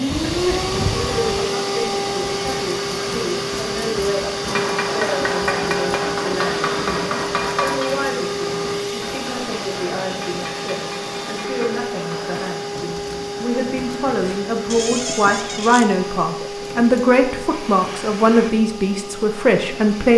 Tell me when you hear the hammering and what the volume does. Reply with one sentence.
The hammering can be heard from 4.5 to 12.6 s, getting quieter.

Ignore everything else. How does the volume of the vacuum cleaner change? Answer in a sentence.
The volume of the vacuum cleaner goes down.